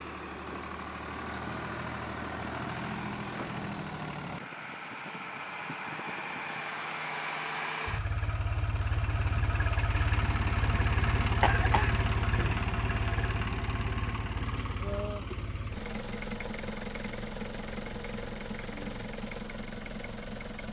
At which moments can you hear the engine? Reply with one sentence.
The engine can be heard from 0.0 to 20.6 s.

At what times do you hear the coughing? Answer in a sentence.
You can hear the coughing from 11.4 to 12.6 s.